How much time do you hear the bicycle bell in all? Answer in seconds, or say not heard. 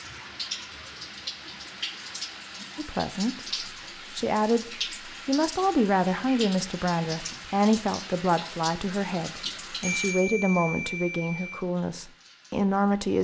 2 s.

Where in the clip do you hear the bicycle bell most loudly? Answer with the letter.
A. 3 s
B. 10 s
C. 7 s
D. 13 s
B.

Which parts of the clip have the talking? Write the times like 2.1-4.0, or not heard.
2.8-13.1.